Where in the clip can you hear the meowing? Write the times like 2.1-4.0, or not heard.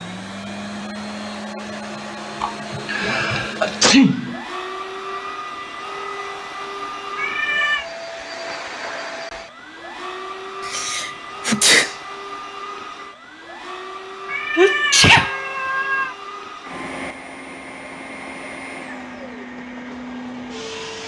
7.2-7.8, 14.2-16.1.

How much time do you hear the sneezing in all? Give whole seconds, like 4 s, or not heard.
4 s.